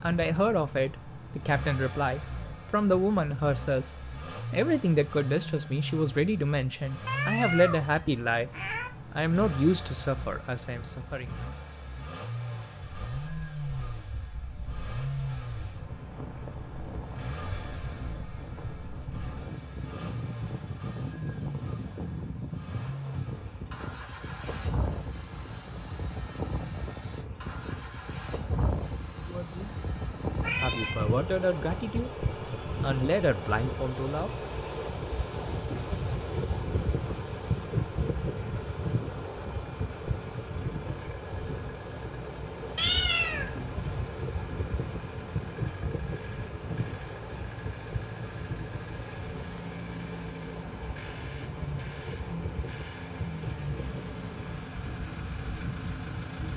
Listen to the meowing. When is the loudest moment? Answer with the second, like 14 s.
43 s.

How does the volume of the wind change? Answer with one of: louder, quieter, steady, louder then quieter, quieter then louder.
louder then quieter.